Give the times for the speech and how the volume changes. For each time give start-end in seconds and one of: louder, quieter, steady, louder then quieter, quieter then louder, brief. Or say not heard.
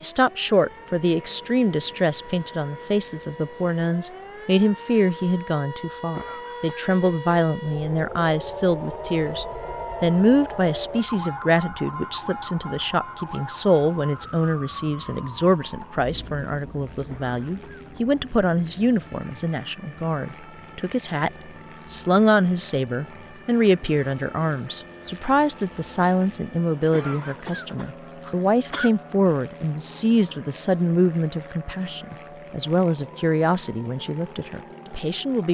0.0-35.4 steady.